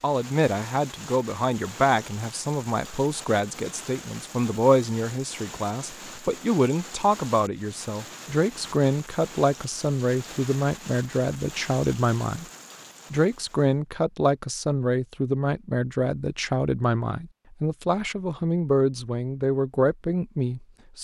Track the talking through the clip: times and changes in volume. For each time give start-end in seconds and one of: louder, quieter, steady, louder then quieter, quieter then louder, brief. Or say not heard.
0.0-12.4 steady
13.1-20.9 steady.